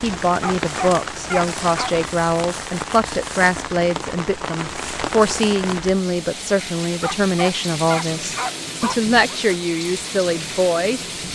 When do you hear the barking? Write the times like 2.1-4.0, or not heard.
0.3-1.9, 7.0-9.4.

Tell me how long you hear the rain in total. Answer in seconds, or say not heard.
11 s.